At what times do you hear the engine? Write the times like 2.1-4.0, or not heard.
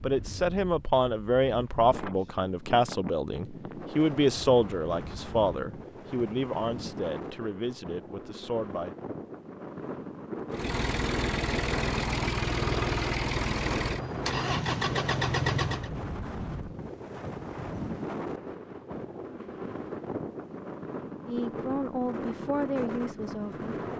10.5-15.9.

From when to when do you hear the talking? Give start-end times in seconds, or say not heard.
0.0-8.9, 21.2-23.8.